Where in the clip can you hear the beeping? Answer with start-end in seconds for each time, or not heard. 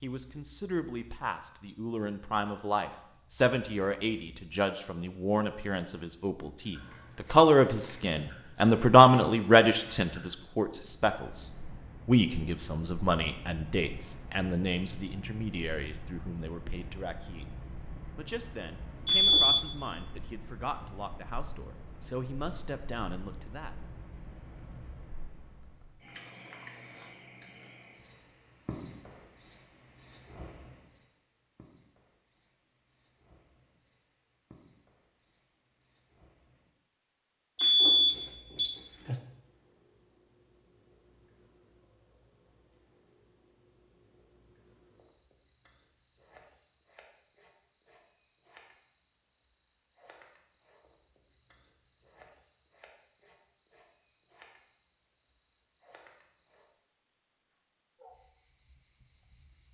19.1-19.6, 37.5-39.2.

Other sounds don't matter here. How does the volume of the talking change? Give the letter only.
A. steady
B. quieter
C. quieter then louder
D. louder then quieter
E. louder
D.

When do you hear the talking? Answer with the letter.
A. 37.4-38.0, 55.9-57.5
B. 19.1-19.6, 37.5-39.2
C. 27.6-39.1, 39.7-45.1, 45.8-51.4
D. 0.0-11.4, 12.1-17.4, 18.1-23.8
D.